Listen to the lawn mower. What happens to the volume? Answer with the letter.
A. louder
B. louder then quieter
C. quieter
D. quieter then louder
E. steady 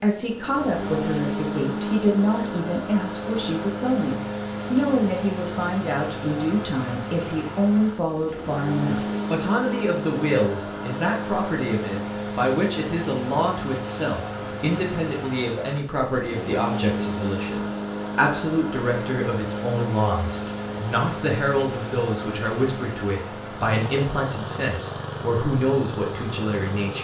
E.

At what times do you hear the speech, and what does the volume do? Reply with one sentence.
You can hear the speech from 0.0 to 26.9 s, at a steady volume.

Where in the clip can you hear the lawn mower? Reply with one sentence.
The lawn mower can be heard from 0.1 to 26.9 s.